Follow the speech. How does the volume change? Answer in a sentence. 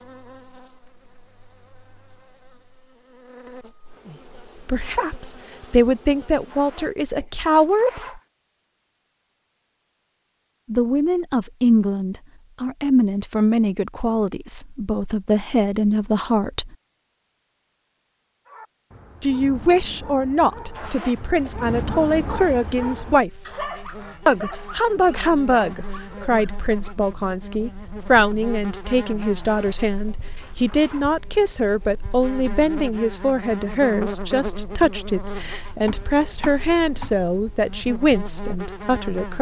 The volume of the speech stays about the same.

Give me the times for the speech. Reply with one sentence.
You can hear the speech from 4.0 to 8.2 s, from 10.7 to 16.8 s, from 19.2 to 23.3 s and from 24.2 to 39.3 s.